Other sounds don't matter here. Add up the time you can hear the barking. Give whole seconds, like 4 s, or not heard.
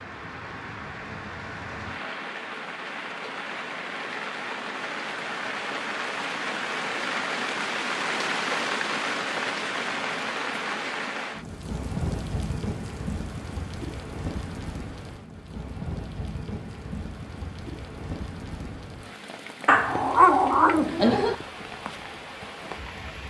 2 s.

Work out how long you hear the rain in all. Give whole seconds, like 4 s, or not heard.
23 s.